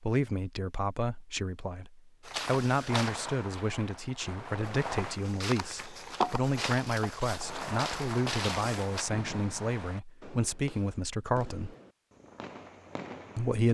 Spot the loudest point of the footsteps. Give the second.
6 s.